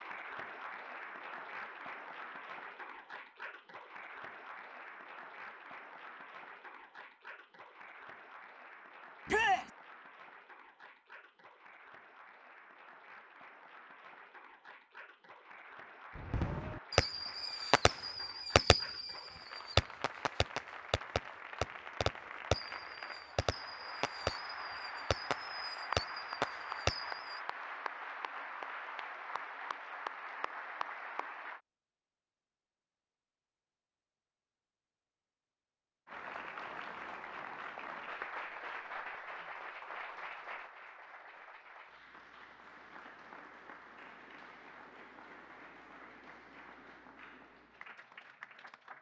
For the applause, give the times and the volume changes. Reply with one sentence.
The applause can be heard from 0.0 to 31.6 s, getting quieter then louder; and from 36.0 to 48.9 s, getting quieter.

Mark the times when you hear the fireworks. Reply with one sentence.
The fireworks can be heard from 16.1 to 27.4 s.